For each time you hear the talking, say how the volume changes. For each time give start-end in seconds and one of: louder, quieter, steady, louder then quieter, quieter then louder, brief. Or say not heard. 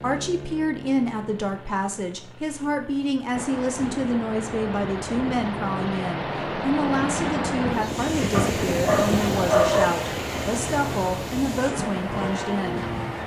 0.0-12.8 steady.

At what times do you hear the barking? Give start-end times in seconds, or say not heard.
8.3-9.9.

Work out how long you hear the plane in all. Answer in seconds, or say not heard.
13 s.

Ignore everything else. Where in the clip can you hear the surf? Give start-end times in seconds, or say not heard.
3.3-13.2.